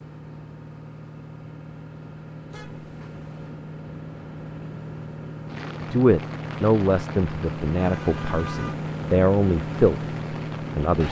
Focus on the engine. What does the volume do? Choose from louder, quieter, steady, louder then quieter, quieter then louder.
louder.